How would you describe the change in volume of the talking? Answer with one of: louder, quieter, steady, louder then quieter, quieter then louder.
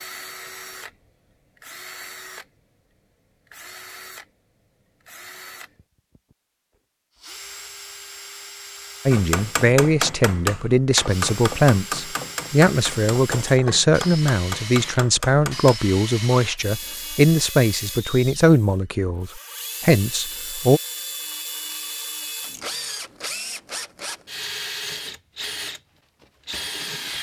steady.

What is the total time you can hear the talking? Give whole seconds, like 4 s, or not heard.
12 s.